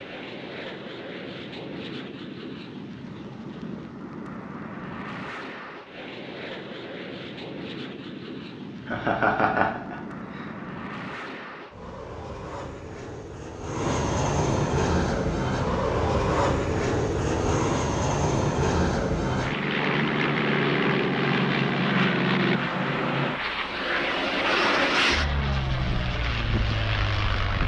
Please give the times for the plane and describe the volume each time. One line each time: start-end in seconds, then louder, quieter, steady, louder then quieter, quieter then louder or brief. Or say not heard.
0.0-27.6 louder.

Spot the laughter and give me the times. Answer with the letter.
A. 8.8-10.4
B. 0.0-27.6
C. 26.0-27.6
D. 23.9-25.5
A.